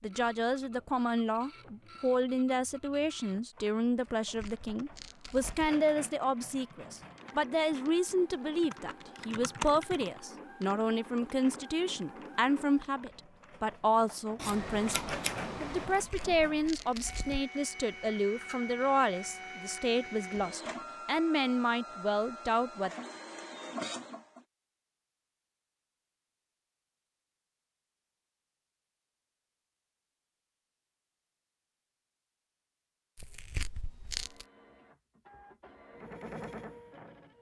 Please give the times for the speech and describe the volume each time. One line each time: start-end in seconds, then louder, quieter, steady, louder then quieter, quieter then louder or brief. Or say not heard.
0.0-22.9 steady.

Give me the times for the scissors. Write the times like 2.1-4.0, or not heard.
14.3-16.1.